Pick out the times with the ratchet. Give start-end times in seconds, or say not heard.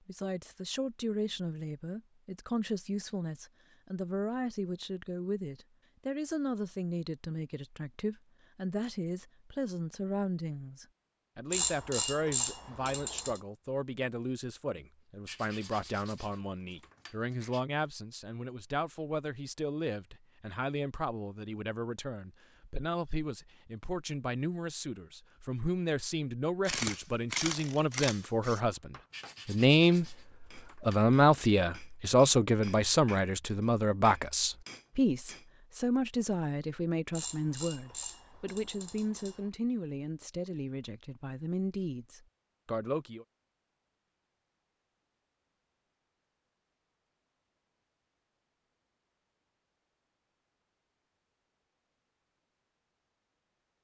11.5-13.4, 26.6-28.6, 37.1-39.5.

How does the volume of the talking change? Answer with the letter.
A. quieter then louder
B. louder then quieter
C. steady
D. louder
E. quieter
B.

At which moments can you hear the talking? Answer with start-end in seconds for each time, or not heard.
0.1-43.2.